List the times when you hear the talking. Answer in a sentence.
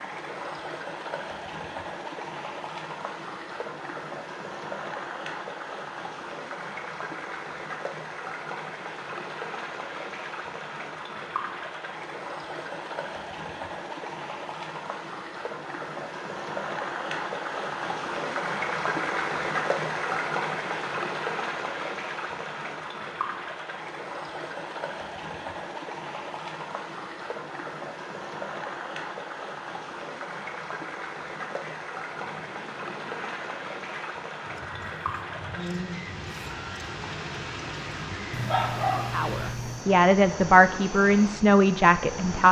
The talking can be heard from 39.1 to 42.4 s.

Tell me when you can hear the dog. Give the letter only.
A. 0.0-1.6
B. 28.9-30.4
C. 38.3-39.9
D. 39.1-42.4
C.